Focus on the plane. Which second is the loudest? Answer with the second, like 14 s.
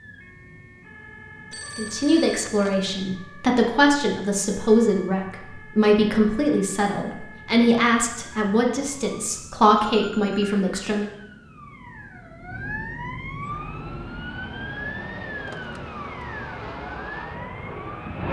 18 s.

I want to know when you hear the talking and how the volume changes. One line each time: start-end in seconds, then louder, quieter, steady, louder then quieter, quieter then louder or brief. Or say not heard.
1.8-11.1 steady.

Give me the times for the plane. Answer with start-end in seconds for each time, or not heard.
13.4-18.2.